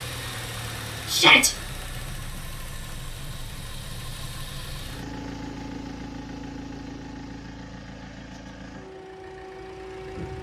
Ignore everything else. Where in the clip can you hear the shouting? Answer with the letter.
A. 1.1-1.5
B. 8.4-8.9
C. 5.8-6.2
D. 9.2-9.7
A.